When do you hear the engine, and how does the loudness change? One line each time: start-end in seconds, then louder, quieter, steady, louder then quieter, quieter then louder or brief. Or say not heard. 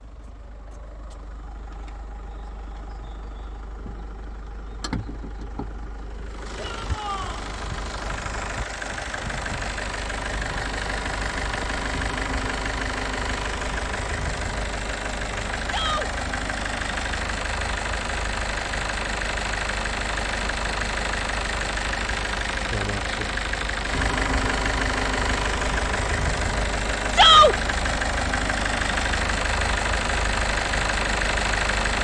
0.0-31.9 louder.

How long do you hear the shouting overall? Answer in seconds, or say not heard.
2 s.